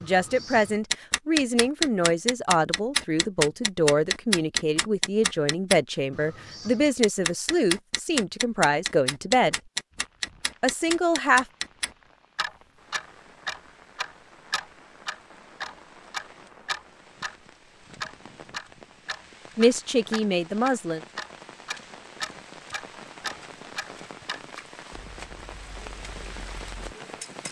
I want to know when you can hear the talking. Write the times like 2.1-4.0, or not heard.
0.0-9.6, 10.6-11.4, 19.6-21.0.